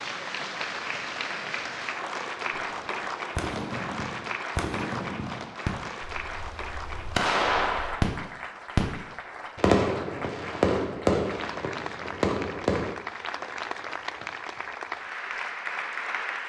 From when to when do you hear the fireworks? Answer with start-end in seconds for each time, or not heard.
2.5-12.9.